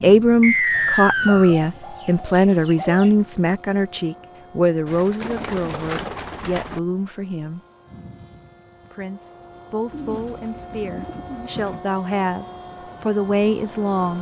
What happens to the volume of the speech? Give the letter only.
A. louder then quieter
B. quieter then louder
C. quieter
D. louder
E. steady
B.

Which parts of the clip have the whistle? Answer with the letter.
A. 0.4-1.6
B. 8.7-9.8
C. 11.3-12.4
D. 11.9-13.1
A.